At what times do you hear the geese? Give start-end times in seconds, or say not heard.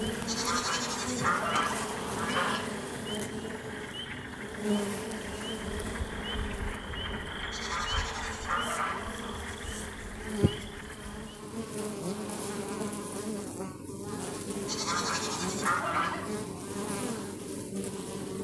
0.2-2.7, 7.5-9.4, 14.7-16.3.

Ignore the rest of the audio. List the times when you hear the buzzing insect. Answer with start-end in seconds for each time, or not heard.
0.0-18.4.